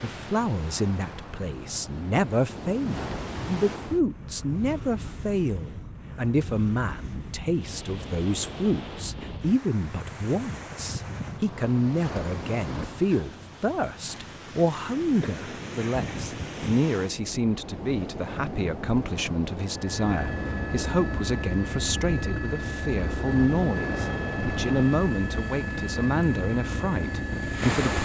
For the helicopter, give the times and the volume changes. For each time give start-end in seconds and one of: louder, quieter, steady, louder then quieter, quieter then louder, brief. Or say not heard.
19.6-27.9 steady.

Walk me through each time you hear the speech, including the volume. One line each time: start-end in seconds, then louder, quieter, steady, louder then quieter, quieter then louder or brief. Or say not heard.
0.0-27.9 steady.